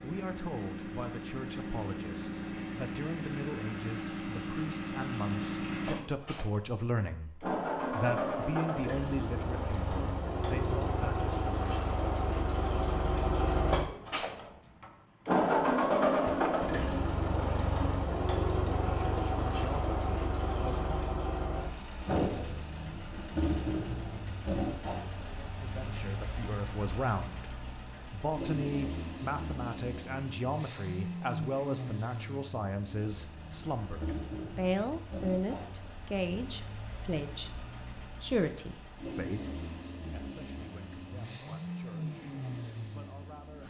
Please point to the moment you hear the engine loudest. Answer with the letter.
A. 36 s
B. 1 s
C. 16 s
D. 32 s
C.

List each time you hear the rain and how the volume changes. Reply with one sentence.
You can't hear the rain here.